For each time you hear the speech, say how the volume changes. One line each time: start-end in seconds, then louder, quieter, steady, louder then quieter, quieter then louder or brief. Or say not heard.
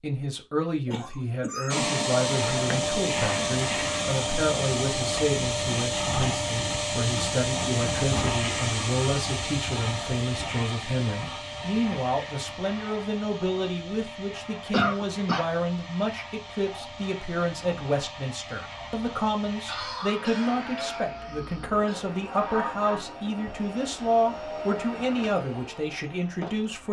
0.0-26.8 steady.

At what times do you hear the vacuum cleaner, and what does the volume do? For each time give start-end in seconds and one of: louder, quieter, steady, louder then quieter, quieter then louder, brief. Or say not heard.
1.7-26.8 quieter.